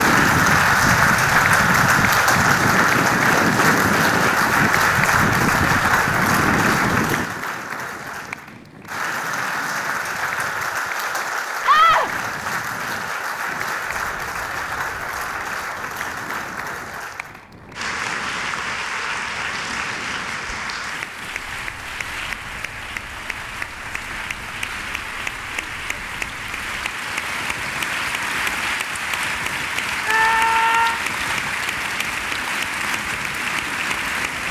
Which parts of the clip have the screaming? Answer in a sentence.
The screaming can be heard from 11.7 to 12.1 s and from 30.1 to 31.0 s.